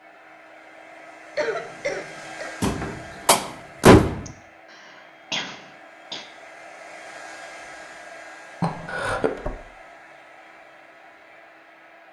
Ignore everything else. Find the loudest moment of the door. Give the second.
4 s.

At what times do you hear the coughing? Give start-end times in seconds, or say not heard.
1.4-2.5, 4.2-6.2, 8.6-9.3.